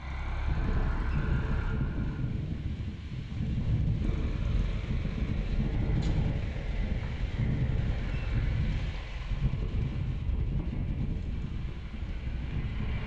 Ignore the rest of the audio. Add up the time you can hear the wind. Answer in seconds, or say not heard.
13 s.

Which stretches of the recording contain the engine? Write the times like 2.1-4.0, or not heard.
0.0-2.2, 4.0-13.0.